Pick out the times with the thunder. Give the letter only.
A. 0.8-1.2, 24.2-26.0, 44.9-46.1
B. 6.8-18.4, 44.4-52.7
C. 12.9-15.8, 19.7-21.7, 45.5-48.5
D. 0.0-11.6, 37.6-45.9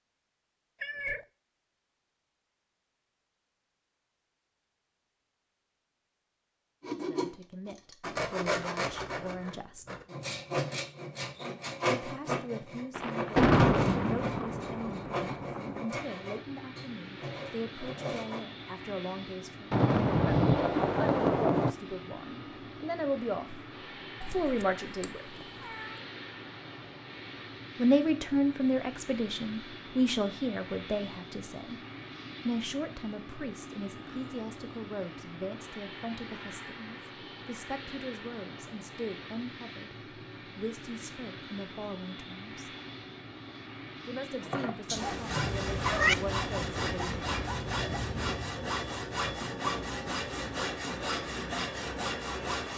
C.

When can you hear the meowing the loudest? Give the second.
46 s.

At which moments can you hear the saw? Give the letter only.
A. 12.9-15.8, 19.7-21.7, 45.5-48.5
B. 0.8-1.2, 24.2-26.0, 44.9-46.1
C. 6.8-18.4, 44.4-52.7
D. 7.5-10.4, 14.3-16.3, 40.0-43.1
C.